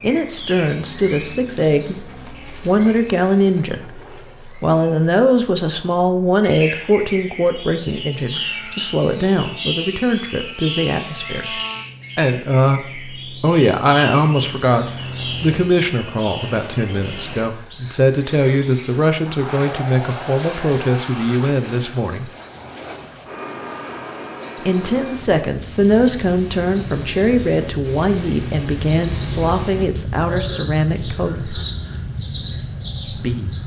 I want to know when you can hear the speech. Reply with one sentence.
You can hear the speech from 0.0 to 22.3 s, from 24.6 to 31.6 s and from 33.0 to 33.6 s.